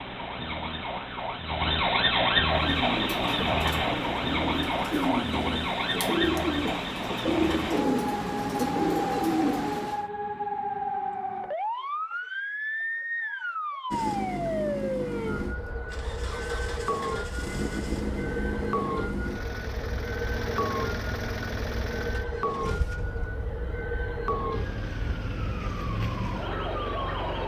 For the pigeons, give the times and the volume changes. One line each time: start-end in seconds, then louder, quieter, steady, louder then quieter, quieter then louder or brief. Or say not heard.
2.5-10.1 louder.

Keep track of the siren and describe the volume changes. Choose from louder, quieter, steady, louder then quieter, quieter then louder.
quieter.